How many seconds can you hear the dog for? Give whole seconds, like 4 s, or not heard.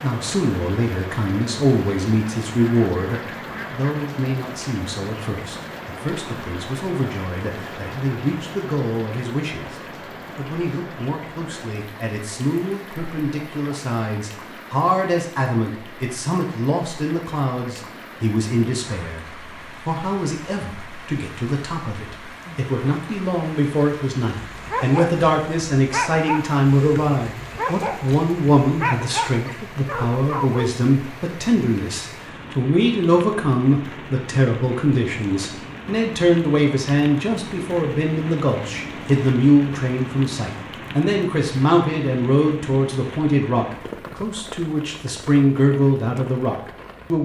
6 s.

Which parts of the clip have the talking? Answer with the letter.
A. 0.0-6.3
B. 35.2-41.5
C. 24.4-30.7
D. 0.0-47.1
D.